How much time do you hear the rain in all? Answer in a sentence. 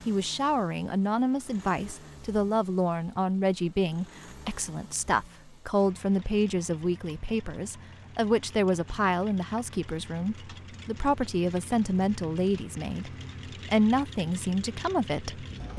You can't hear the rain here.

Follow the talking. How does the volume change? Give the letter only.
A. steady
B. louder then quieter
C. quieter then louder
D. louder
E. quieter
A.